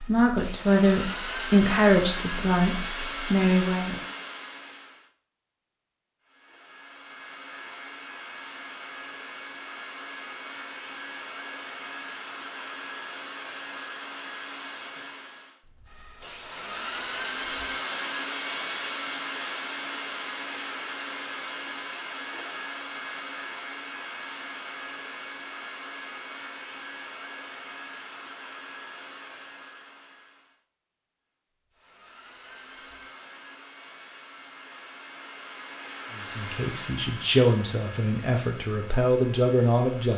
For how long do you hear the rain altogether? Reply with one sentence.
You can't hear the rain here.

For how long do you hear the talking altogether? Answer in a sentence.
You can hear the talking for 8 seconds altogether.